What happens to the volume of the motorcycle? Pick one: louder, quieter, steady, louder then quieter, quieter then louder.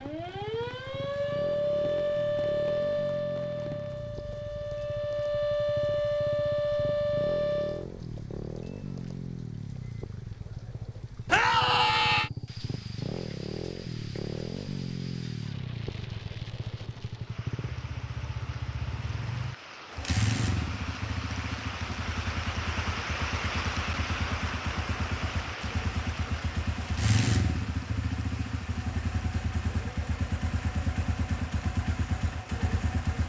louder.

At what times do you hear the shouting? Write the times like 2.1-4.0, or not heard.
11.2-12.3.